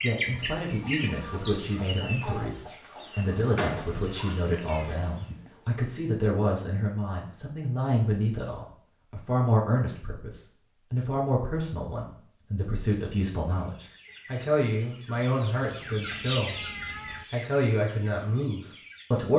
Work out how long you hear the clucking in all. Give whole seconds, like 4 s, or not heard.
11 s.